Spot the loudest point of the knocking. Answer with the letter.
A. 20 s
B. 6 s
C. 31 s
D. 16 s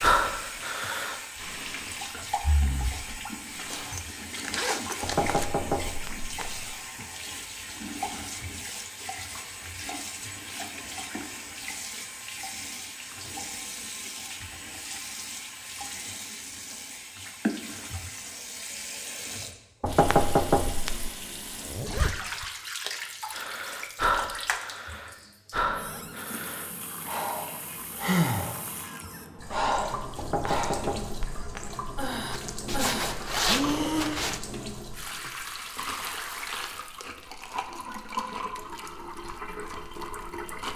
A.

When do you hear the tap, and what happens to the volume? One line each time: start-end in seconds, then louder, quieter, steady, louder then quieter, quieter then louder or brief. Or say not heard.
0.0-40.7 steady.